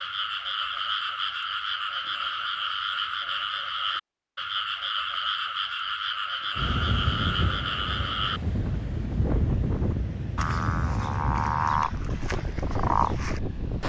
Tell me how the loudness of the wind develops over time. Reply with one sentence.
The loudness of the wind stays about the same.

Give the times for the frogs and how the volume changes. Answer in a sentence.
You can hear the frogs from 0.0 to 13.8 s, at a steady volume.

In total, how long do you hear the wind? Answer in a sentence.
You can hear the wind for 7 seconds altogether.